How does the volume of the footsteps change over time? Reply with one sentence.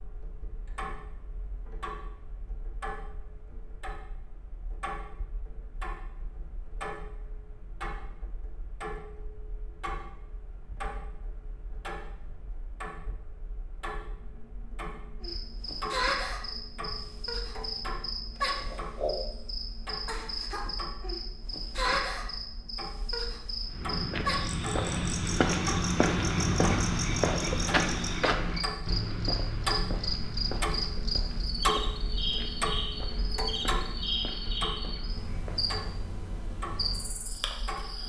The loudness of the footsteps goes down.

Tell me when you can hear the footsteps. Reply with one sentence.
You can hear the footsteps from 23.6 to 35.8 s.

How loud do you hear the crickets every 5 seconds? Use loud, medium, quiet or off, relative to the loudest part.
off, off, off, loud, loud, loud, loud, medium.